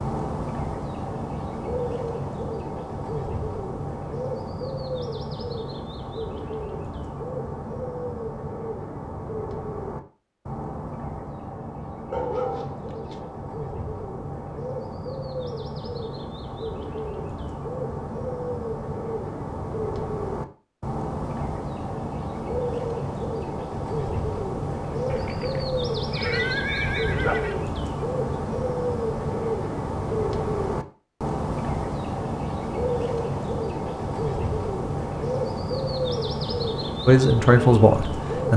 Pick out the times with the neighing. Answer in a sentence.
The neighing can be heard from 25.1 to 27.6 s.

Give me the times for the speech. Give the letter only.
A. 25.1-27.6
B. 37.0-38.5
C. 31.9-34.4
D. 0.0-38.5
B.